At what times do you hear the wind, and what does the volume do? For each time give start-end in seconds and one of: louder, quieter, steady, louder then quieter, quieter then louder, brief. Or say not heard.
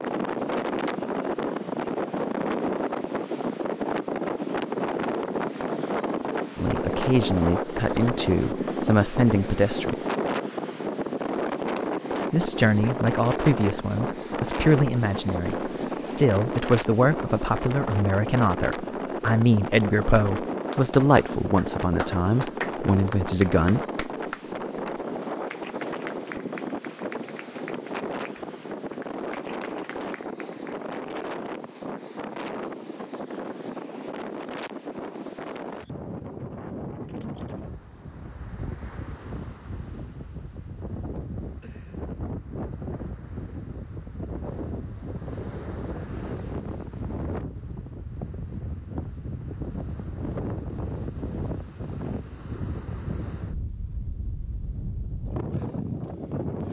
0.0-56.6 quieter.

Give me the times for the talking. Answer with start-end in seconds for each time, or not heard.
6.5-9.9, 12.3-23.9.